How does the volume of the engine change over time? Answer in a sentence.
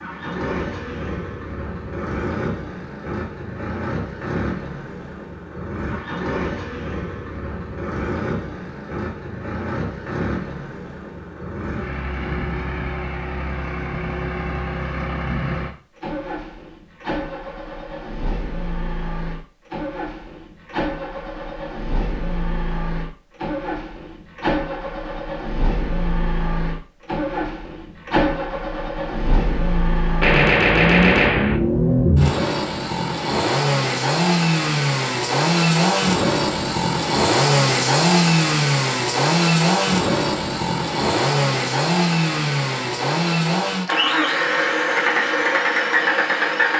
The loudness of the engine goes up.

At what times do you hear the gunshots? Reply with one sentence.
You can hear the gunshots from 30.2 to 31.6 s.